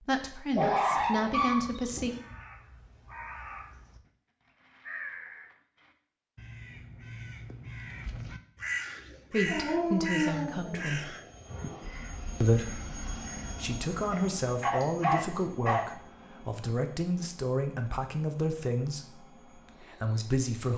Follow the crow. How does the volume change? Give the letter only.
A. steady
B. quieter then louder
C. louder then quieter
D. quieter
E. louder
C.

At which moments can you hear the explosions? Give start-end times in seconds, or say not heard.
not heard.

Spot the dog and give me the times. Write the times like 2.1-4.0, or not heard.
0.5-2.4, 9.4-11.8, 14.1-15.8.